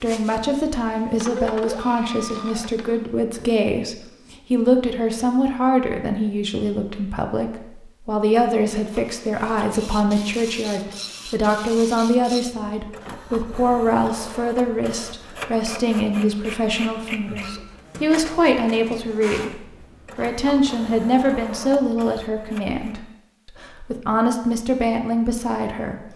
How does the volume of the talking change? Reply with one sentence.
The volume of the talking stays about the same.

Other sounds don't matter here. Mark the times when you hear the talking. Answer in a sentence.
The talking can be heard from 0.0 to 26.1 s.